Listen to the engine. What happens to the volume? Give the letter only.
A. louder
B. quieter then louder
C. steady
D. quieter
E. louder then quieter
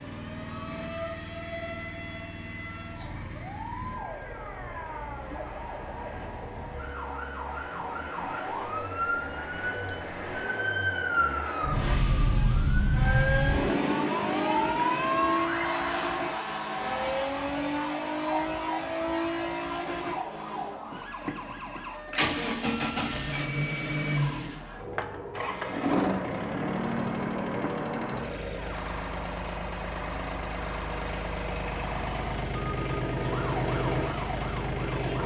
A.